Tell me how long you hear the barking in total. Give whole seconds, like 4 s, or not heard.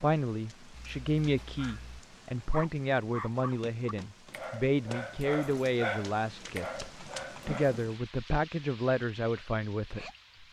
7 s.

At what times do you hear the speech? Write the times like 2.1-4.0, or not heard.
0.0-10.4.